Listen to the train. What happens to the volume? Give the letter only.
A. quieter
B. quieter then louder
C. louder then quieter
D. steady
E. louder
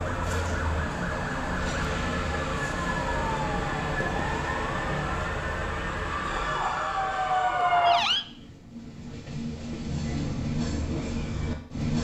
B.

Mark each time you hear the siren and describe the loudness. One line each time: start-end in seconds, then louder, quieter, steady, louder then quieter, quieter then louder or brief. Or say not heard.
0.0-8.2 louder.